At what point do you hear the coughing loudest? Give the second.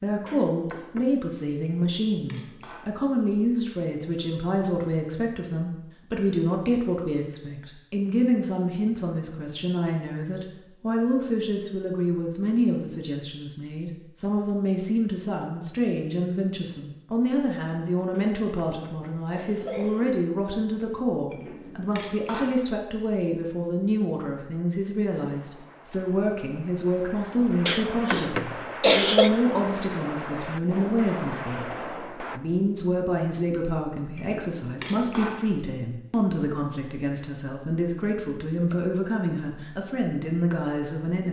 29 s.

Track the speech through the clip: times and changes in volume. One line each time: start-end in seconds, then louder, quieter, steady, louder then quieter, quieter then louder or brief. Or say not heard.
0.0-31.8 steady
32.4-41.2 steady.